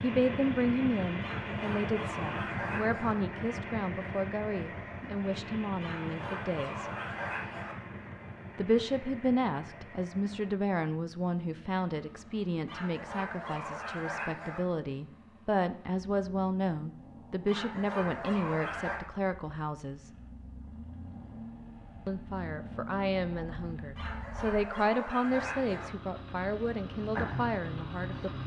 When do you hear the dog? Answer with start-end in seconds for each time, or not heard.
1.2-3.1, 5.8-7.8, 12.7-14.6, 17.4-19.0, 23.9-25.9.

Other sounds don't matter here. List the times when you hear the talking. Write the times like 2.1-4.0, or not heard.
0.0-6.8, 8.6-20.1, 22.1-28.4.